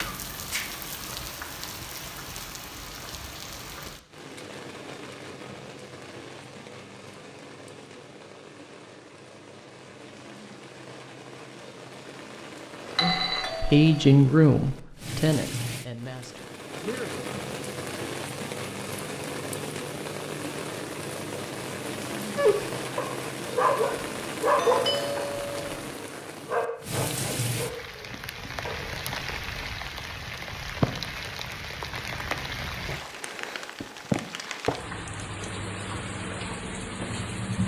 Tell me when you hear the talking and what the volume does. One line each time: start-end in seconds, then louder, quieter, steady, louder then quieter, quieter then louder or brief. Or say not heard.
13.0-17.2 quieter.